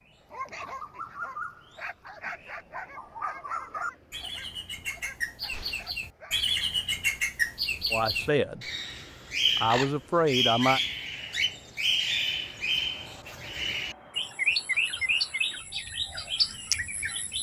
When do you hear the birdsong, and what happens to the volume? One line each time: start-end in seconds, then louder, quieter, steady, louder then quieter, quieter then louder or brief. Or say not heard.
0.0-17.3 louder.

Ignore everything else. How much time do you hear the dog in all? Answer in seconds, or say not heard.
6 s.